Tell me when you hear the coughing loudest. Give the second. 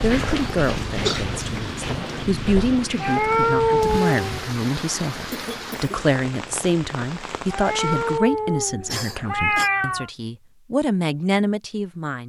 1 s.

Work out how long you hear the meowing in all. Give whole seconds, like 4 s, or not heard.
4 s.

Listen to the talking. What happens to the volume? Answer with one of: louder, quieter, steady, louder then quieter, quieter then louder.
steady.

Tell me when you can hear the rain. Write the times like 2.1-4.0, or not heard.
0.0-8.4.